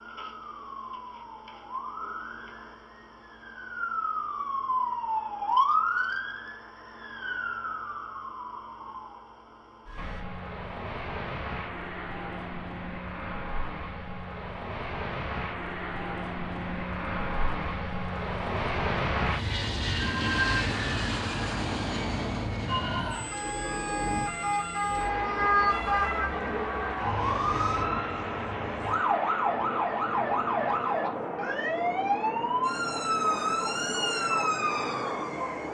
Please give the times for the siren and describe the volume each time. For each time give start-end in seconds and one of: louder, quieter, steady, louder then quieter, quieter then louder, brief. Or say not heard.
0.0-10.2 louder then quieter
22.6-35.6 steady.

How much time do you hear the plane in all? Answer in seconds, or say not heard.
26 s.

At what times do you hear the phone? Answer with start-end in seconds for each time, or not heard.
20.0-20.8.